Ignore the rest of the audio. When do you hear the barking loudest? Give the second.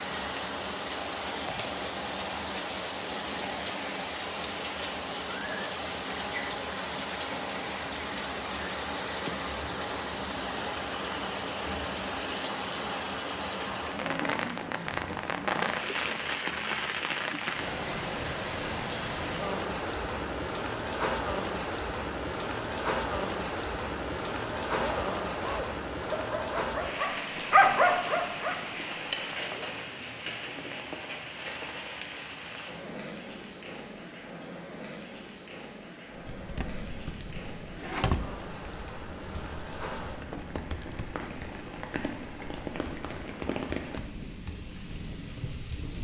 28 s.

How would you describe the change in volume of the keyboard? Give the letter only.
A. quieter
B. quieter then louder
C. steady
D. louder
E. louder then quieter
A.